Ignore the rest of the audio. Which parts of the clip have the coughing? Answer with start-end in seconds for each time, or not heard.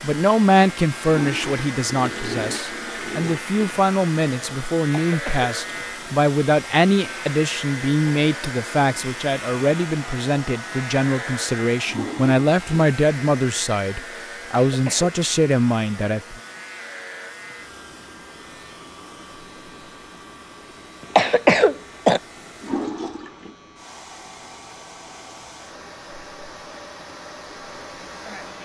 4.9-5.5, 14.7-15.2, 21.1-22.2.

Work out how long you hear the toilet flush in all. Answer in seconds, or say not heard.
5 s.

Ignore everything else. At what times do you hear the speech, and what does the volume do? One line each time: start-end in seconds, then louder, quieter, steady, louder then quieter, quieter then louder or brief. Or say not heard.
0.0-16.4 steady.